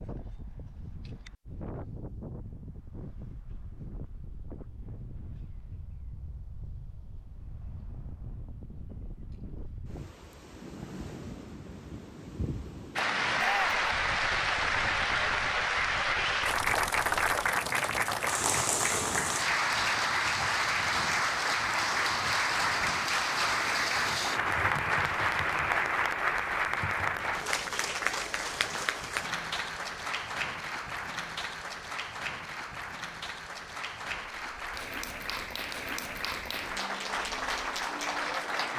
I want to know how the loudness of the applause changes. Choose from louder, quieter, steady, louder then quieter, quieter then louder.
quieter.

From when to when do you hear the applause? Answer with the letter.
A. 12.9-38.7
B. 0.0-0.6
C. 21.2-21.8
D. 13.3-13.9
A.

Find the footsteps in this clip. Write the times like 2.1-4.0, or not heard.
not heard.